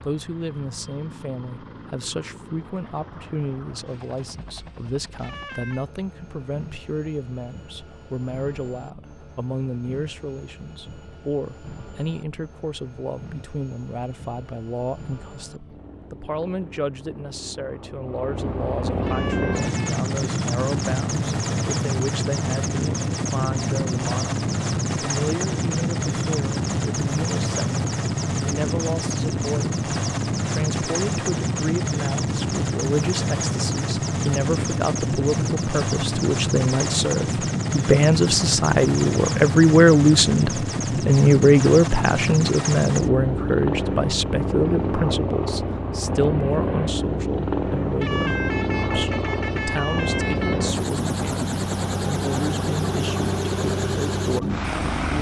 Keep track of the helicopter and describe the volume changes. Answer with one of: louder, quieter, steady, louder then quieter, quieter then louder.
louder.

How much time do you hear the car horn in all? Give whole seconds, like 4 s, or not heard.
4 s.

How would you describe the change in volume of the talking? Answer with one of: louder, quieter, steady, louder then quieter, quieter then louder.
louder then quieter.